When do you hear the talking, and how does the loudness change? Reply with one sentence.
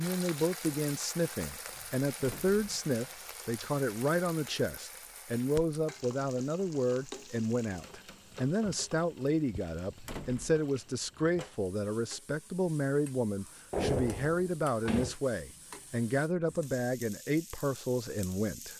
You can hear the talking from 0.0 to 18.7 s, at a steady volume.